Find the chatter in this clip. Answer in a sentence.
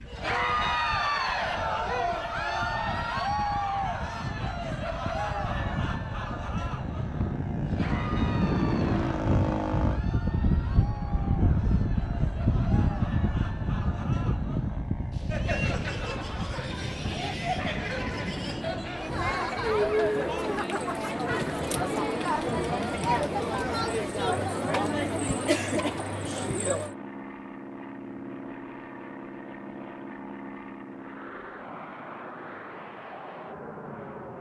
You can hear the chatter from 0.1 to 26.9 s.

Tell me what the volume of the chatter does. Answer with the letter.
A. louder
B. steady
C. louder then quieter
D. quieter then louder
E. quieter
D.